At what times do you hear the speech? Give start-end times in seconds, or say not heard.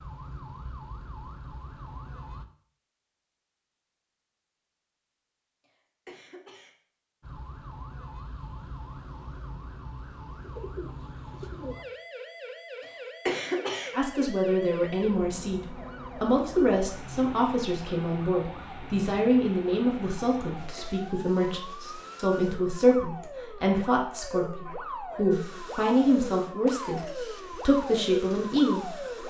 13.9-28.9.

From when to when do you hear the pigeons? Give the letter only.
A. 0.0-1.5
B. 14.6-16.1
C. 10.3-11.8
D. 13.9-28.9
C.